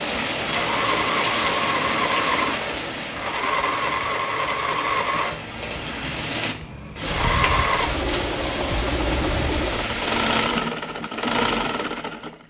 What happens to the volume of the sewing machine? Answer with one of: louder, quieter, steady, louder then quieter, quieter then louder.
quieter then louder.